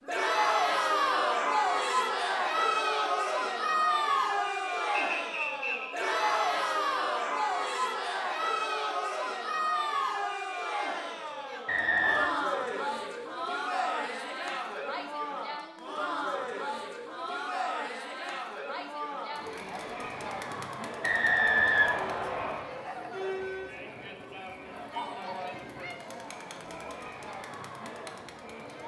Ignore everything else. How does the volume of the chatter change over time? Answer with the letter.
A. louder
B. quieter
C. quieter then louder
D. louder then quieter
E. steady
B.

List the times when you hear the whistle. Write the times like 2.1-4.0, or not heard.
5.0-6.0, 11.7-12.3, 21.0-22.6.